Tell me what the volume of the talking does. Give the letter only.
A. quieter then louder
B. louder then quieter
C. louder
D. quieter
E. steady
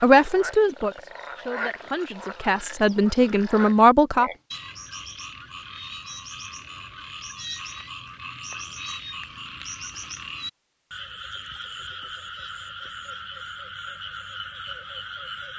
A.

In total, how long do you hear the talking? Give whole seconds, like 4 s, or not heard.
4 s.